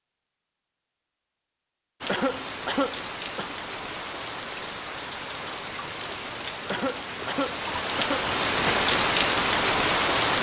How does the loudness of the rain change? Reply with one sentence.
The volume of the rain goes up.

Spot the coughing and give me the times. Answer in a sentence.
You can hear the coughing from 2.0 to 3.5 s and from 6.7 to 8.8 s.